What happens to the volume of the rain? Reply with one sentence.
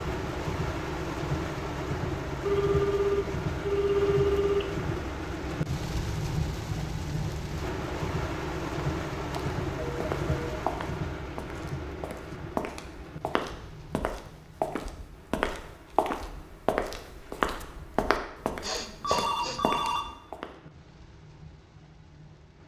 The volume of the rain goes down.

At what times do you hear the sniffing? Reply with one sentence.
The sniffing can be heard from 18.6 to 19.6 s.